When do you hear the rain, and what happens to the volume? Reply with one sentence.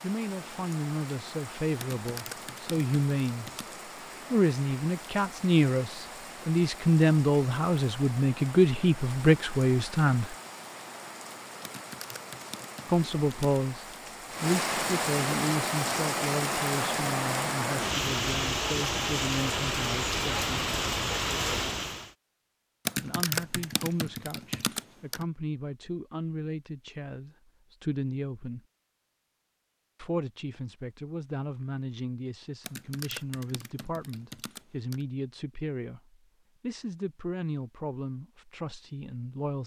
The rain can be heard from 0.0 to 22.1 s, getting louder.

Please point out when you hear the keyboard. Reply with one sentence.
The keyboard can be heard from 1.8 to 3.8 s, from 11.6 to 13.6 s, from 22.9 to 25.2 s and from 32.6 to 35.0 s.